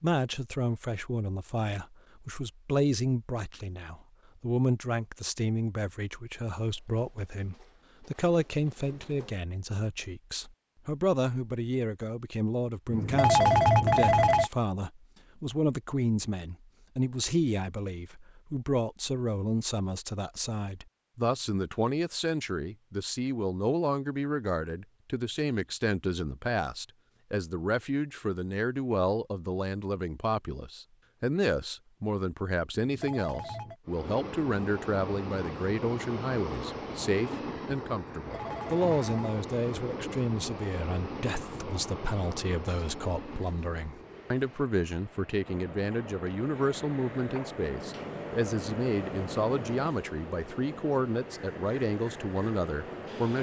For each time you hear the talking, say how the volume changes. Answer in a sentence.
You can hear the talking from 0.0 to 53.3 s, at a steady volume.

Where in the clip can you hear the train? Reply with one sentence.
The train can be heard from 33.9 to 53.3 s.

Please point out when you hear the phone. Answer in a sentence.
You can hear the phone from 12.9 to 14.5 s, from 32.8 to 33.8 s and from 38.2 to 39.4 s.